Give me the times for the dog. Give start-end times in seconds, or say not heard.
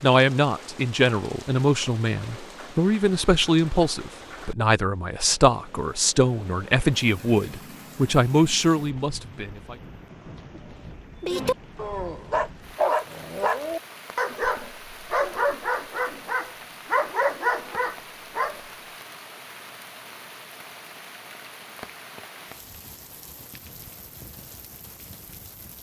11.2-18.6.